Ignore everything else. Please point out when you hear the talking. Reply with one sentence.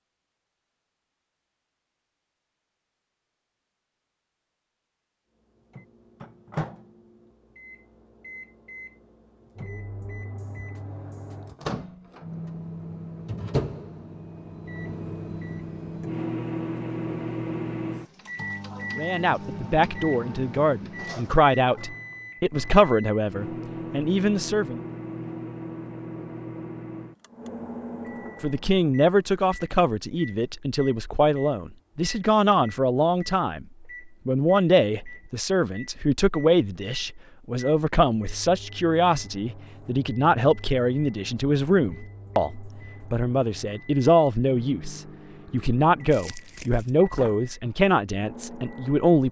The talking can be heard from 18.9 to 24.8 s, from 28.4 to 33.6 s and from 34.2 to 49.2 s.